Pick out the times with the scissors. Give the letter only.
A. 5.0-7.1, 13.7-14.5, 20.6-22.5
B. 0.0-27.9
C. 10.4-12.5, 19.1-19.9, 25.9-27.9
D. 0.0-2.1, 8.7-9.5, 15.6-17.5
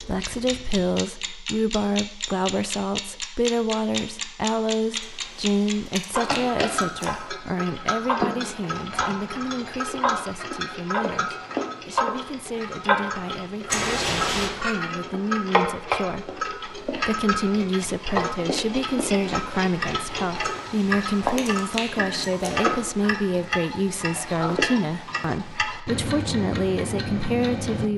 A.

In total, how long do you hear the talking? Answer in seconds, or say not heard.
28 s.